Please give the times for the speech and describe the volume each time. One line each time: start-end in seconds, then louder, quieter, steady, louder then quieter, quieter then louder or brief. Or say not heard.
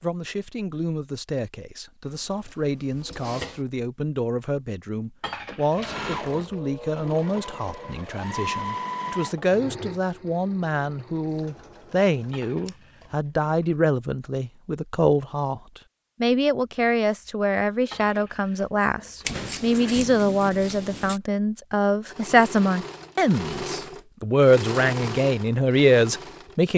0.0-26.7 louder.